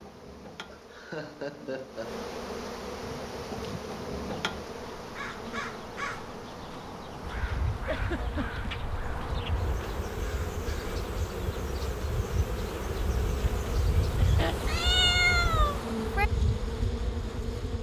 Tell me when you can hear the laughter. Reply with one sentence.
You can hear the laughter from 0.7 to 2.2 s, from 7.8 to 8.7 s and from 13.3 to 14.6 s.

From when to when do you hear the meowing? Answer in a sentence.
The meowing can be heard from 14.7 to 16.2 s.